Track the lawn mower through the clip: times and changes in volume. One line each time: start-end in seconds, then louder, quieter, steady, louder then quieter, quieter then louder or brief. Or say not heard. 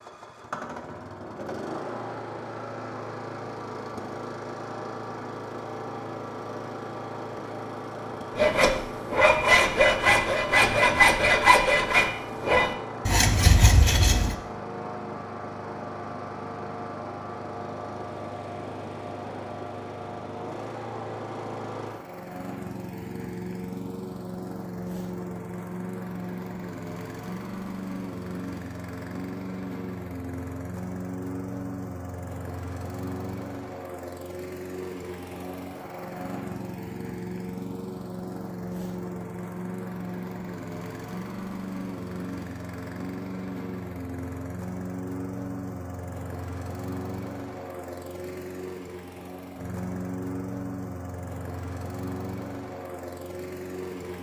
0.0-54.1 steady.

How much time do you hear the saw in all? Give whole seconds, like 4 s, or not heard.
6 s.